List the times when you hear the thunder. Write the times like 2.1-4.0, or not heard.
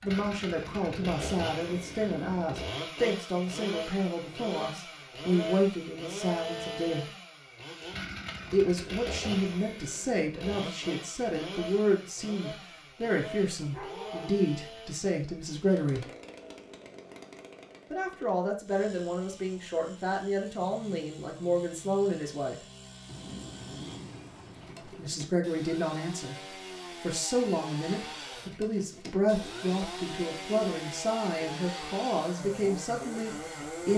0.7-2.5, 23.1-25.1.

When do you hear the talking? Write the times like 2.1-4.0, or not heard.
0.0-7.0, 8.5-16.1, 17.9-22.6, 24.9-33.9.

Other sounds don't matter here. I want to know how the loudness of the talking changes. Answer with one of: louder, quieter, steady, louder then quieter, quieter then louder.
steady.